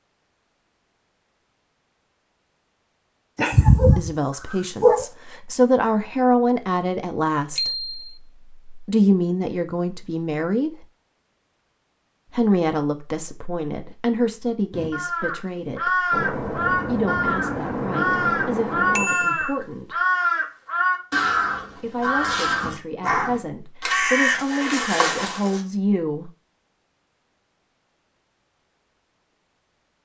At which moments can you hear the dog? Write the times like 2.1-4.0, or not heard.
3.4-5.0.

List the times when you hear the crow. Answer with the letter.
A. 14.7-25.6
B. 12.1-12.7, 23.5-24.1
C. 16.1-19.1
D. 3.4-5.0
A.